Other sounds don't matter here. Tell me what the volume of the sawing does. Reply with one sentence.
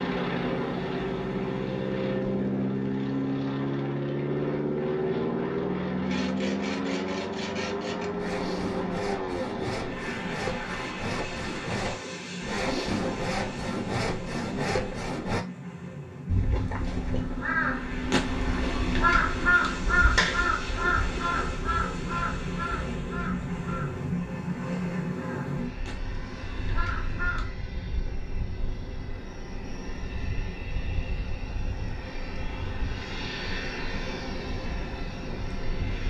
The volume of the sawing goes up.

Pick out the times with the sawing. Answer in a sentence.
The sawing can be heard from 6.0 to 15.4 s.